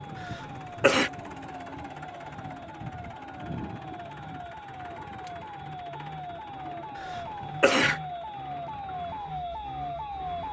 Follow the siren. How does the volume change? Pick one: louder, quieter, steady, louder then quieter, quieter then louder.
louder.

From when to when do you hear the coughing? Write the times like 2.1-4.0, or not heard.
0.2-1.1, 7.0-8.0.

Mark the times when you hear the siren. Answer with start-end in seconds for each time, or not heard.
0.0-10.4.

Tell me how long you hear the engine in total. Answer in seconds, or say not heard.
10 s.